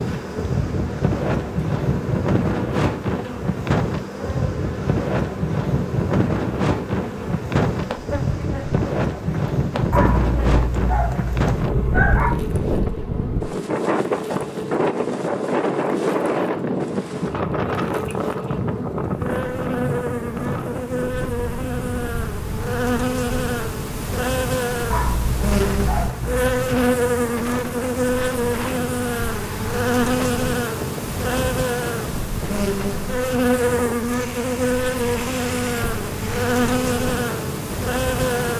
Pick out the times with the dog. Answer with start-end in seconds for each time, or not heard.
9.9-12.4, 24.9-26.8.